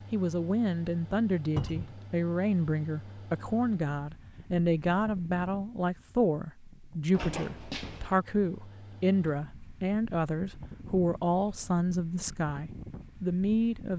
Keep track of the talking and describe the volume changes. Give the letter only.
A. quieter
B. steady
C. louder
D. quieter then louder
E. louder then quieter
B.